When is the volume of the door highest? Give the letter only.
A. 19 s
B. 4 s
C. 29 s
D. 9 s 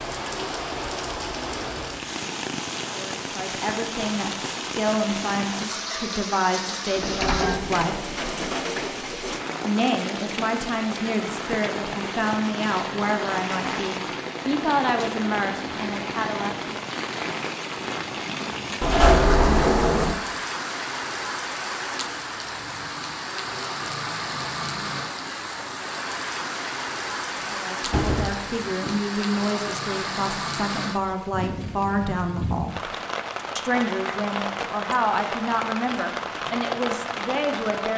A.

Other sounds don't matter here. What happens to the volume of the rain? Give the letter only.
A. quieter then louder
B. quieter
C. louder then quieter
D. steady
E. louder
D.